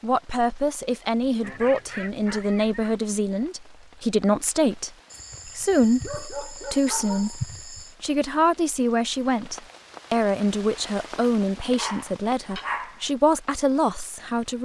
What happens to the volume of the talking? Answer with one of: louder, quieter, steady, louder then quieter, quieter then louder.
steady.